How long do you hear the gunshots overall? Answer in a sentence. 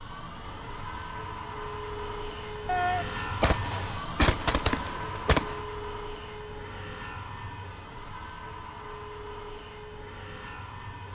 You can hear the gunshots for 3 seconds altogether.